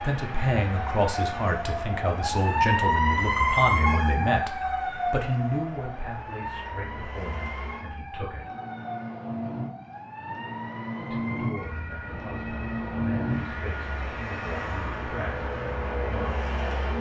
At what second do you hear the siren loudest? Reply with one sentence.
The volume of the siren peaks at 3 seconds.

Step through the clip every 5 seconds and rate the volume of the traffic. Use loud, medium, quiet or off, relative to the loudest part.
medium, medium, loud, loud.